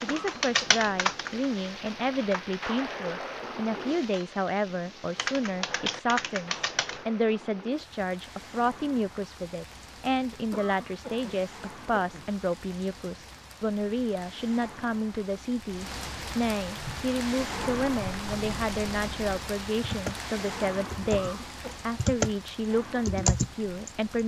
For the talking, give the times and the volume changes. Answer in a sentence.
You can hear the talking from 0.0 to 24.2 s, at a steady volume.